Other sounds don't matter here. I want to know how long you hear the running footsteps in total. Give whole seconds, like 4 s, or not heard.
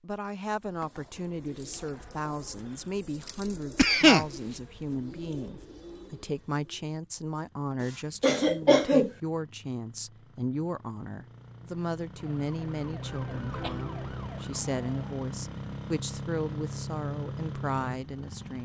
not heard.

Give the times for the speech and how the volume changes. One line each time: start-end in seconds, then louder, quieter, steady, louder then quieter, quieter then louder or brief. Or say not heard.
0.0-18.6 steady.